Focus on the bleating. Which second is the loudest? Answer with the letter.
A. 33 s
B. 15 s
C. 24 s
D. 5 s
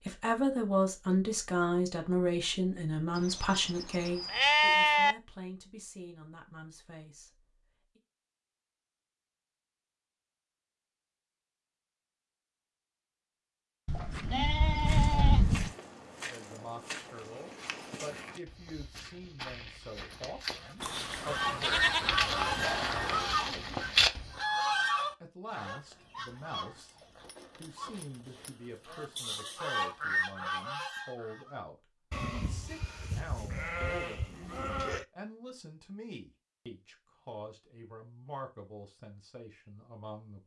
D.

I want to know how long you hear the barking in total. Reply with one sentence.
You can't hear the barking here.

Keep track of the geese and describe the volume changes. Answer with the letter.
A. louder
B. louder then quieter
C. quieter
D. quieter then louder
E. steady
D.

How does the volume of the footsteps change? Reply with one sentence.
The loudness of the footsteps goes up.